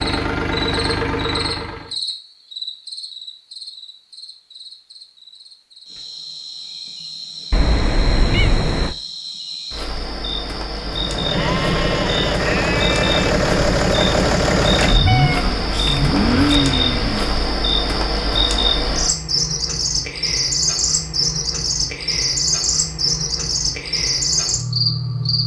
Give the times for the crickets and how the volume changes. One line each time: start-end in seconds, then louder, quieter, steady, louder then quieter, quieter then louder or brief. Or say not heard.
0.0-25.4 louder.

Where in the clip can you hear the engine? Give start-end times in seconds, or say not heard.
0.0-1.9, 10.8-17.5.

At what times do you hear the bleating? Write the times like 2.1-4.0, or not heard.
11.3-13.3.